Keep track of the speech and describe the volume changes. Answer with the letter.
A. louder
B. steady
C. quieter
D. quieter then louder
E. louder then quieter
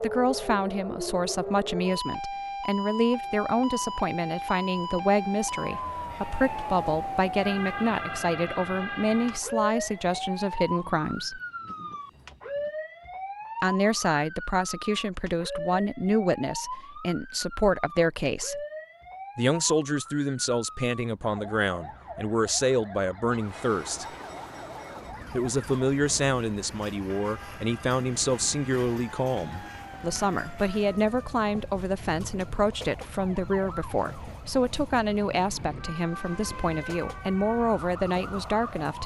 B.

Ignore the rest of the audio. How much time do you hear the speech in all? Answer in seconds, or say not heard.
35 s.